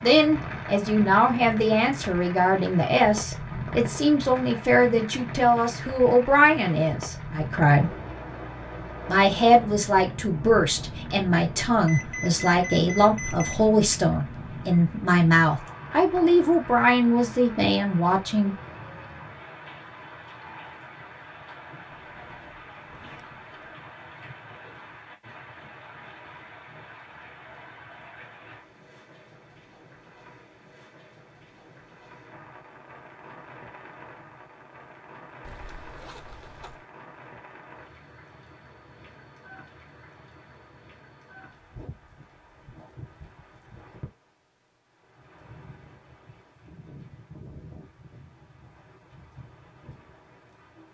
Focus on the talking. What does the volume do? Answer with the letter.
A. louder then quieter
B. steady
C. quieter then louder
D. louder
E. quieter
B.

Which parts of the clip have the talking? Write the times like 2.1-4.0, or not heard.
0.0-8.0, 9.1-18.6.